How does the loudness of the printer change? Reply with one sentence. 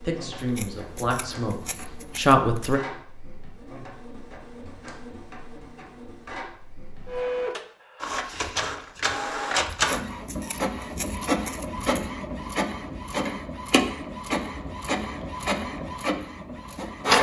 The volume of the printer goes up.